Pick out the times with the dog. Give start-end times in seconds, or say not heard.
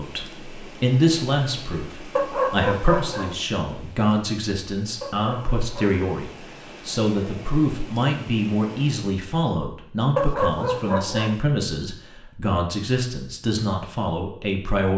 2.1-3.4, 5.0-6.0, 10.2-11.4.